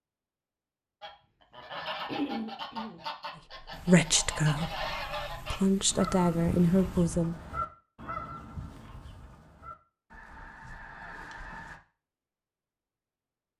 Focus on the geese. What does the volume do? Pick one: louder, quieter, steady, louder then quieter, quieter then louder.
quieter.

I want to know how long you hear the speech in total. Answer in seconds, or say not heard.
4 s.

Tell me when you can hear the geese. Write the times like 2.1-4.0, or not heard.
1.0-11.8.